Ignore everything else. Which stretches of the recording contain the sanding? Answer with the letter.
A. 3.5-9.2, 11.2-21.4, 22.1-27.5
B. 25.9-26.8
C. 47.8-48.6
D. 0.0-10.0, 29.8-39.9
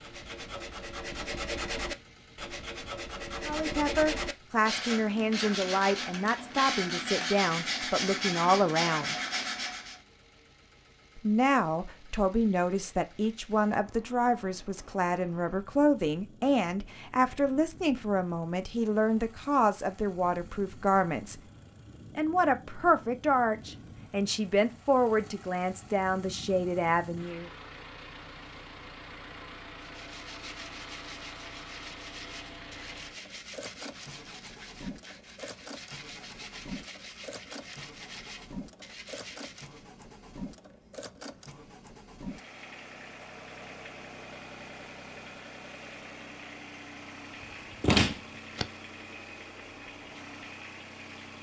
D.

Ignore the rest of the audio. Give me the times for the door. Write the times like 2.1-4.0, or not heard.
47.8-48.6.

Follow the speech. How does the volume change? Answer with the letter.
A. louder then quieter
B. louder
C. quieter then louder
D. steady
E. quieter
D.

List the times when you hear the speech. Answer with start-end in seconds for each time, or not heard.
3.5-9.2, 11.2-21.4, 22.1-27.5.